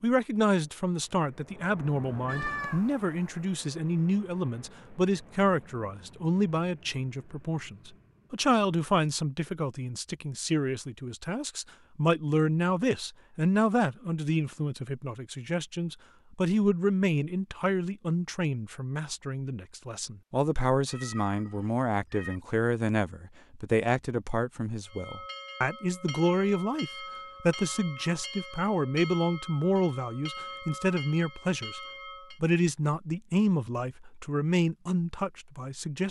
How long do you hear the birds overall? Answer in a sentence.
You can't hear the birds here.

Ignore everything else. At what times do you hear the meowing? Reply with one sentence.
The meowing can be heard from 2.2 to 2.9 s and from 20.9 to 22.4 s.